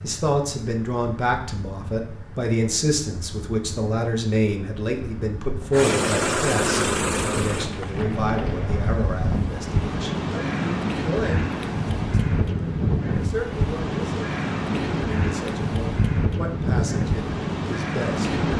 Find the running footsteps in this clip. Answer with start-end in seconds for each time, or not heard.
not heard.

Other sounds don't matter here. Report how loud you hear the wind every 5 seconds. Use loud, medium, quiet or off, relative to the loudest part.
quiet, medium, loud, loud.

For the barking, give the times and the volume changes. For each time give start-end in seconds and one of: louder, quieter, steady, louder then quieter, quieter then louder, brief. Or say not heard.
not heard.